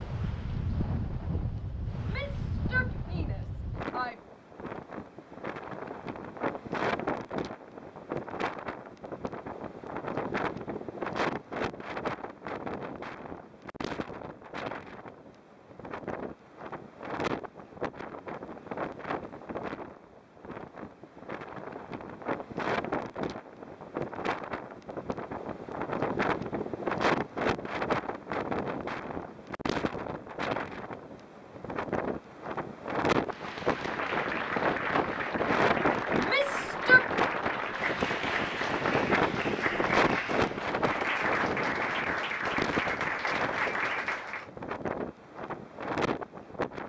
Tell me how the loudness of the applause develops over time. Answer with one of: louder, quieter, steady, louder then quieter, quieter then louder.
steady.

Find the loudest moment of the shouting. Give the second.
37 s.